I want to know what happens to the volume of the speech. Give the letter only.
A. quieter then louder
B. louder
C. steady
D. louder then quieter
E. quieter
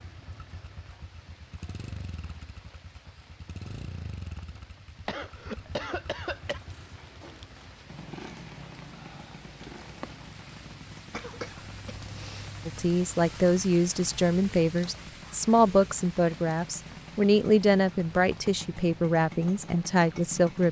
C.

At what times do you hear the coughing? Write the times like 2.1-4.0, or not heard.
5.0-6.6, 11.1-12.6.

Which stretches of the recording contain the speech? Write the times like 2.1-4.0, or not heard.
12.7-20.6.